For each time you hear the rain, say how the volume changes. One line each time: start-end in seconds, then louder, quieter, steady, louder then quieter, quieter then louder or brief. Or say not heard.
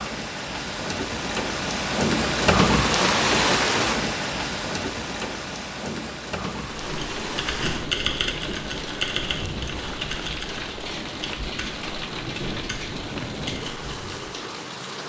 0.0-15.0 quieter.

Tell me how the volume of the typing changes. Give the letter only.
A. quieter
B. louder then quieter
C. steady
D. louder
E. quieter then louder
A.